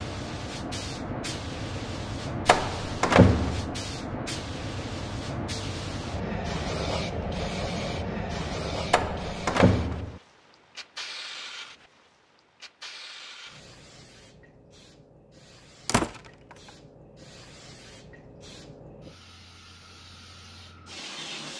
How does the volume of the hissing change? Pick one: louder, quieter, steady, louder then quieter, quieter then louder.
quieter.